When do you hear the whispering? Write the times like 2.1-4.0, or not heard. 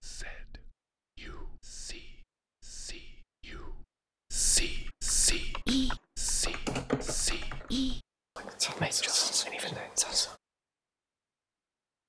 0.0-10.3.